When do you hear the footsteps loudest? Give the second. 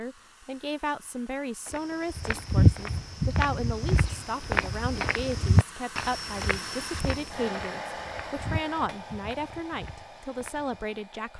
3 s.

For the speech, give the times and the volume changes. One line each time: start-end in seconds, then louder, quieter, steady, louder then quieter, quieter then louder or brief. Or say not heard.
0.0-11.3 steady.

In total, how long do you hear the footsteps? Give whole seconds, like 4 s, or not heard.
9 s.